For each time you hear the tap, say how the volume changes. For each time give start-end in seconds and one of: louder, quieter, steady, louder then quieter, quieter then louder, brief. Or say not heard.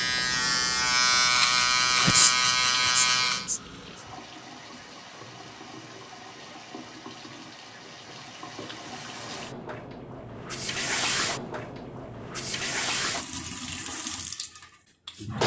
0.0-15.4 louder.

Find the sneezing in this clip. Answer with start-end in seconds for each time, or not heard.
2.0-3.6.